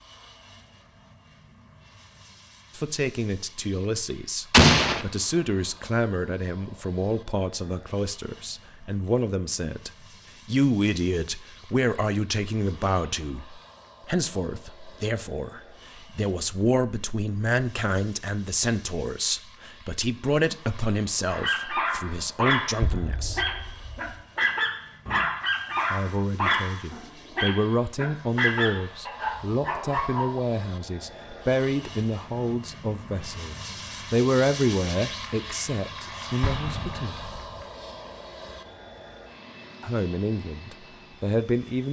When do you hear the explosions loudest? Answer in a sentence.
The loudest moment of the explosions is at 5 seconds.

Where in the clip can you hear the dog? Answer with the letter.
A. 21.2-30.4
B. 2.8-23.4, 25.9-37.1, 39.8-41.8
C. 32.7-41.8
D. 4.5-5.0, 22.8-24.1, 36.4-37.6
A.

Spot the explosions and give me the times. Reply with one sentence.
You can hear the explosions from 4.5 to 5.0 s, from 22.8 to 24.1 s and from 36.4 to 37.6 s.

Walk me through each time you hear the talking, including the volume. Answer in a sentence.
The talking can be heard from 2.8 to 23.4 s, at a steady volume; from 25.9 to 37.1 s, at a steady volume; and briefly from 39.8 to 41.8 s.